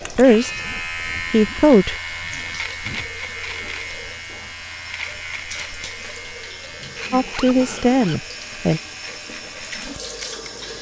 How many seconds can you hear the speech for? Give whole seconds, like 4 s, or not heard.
3 s.